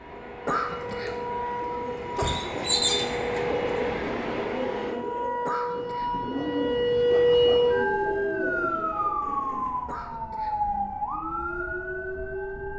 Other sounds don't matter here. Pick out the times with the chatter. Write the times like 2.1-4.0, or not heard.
not heard.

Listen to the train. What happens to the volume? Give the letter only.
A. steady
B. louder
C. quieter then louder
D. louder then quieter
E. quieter
B.